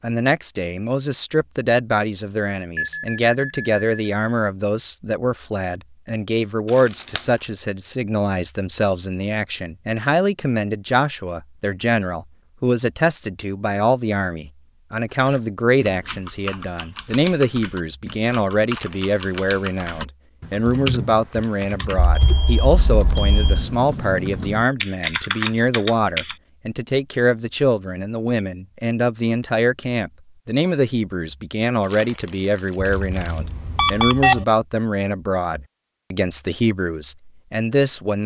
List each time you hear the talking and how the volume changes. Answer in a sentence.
You can hear the talking from 0.0 to 38.2 s, at a steady volume.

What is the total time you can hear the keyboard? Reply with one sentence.
The keyboard can be heard for 11 seconds in total.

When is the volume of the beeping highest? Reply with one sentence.
The loudest moment of the beeping is at 34 seconds.